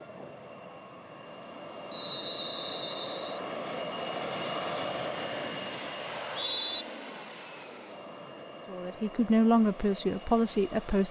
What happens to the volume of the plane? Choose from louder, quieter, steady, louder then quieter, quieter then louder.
louder then quieter.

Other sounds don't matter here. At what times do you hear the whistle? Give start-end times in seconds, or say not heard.
1.9-3.4, 6.0-6.8.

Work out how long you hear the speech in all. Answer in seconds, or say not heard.
2 s.